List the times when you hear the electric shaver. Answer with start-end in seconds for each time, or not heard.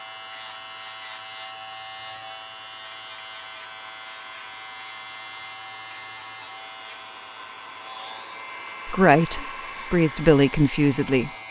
0.0-11.4.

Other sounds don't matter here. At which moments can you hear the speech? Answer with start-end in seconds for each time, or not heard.
8.8-11.3.